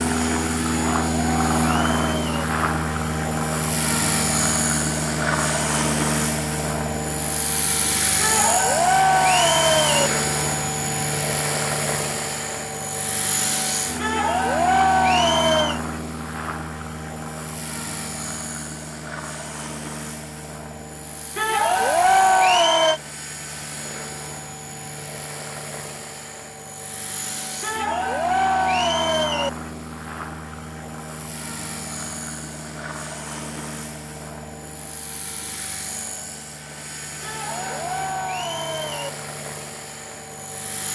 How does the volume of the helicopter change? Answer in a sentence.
The volume of the helicopter goes down.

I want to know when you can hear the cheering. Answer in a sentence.
The cheering can be heard from 0.6 to 2.5 s, from 8.2 to 10.1 s, from 13.9 to 15.8 s, from 21.4 to 23.0 s, from 27.6 to 29.5 s and from 37.2 to 39.1 s.